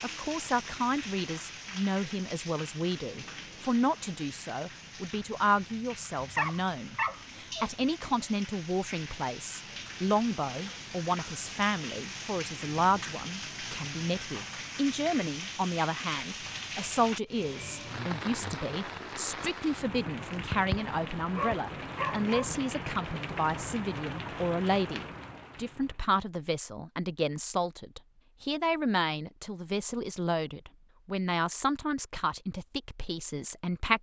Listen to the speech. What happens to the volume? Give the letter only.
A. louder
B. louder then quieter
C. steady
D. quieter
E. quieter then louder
C.